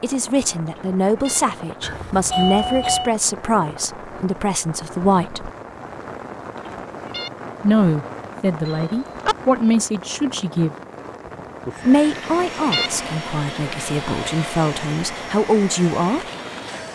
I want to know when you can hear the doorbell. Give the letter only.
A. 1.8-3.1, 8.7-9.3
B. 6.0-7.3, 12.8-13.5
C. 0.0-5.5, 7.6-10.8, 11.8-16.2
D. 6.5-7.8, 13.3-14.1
A.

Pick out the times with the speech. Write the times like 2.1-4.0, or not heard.
0.0-5.5, 7.6-10.8, 11.8-16.2.